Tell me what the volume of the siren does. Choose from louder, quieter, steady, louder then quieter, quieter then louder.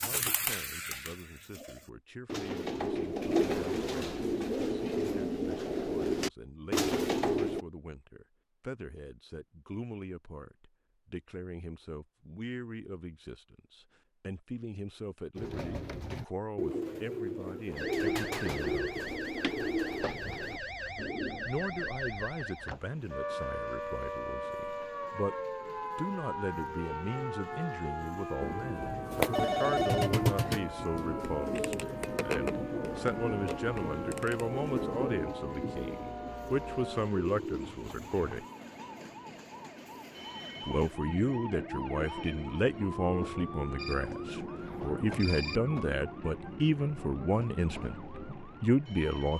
quieter.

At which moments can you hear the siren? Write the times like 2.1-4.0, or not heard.
17.8-49.3.